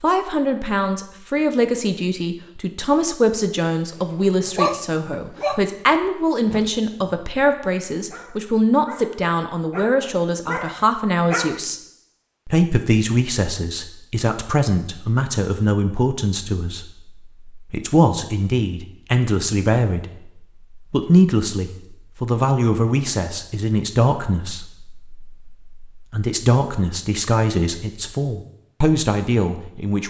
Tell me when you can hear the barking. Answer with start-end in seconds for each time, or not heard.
4.0-11.6.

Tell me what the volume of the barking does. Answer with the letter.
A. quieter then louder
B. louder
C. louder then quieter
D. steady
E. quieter
A.